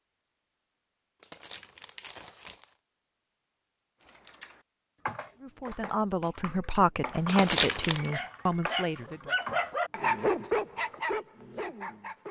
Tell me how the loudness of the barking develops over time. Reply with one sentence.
The volume of the barking goes up, then down.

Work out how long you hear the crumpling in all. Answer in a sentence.
You can hear the crumpling for 2 seconds altogether.